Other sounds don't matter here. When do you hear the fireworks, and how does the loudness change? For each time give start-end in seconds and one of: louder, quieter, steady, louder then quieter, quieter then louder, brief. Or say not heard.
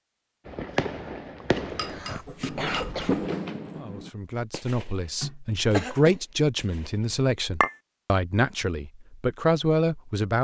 0.5-7.1 quieter.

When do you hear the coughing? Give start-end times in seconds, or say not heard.
1.4-3.3, 5.2-6.2.